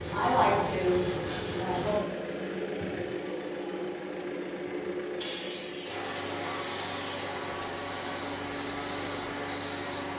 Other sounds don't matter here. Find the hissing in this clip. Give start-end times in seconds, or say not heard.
5.2-10.1.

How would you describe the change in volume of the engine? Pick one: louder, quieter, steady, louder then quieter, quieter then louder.
steady.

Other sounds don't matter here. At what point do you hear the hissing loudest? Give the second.
9 s.